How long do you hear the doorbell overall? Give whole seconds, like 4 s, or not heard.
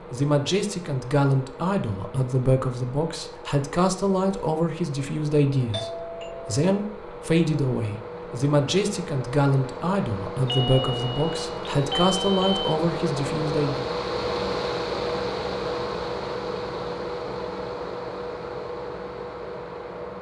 3 s.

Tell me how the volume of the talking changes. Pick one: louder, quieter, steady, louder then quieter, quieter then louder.
steady.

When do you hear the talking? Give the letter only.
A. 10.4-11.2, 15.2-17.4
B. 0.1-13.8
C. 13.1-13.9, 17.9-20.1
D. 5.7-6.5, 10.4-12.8
B.